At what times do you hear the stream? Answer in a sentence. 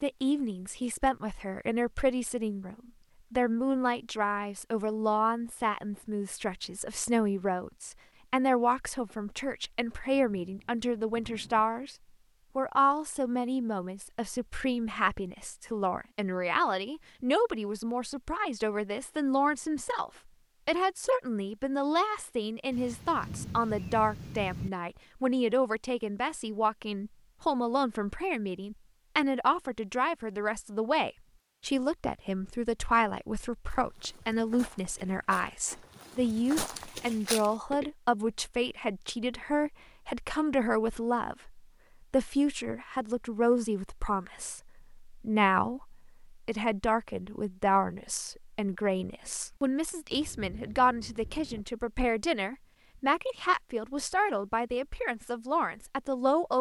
The stream can't be heard in this clip.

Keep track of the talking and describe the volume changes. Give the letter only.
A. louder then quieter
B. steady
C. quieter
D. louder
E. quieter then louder
B.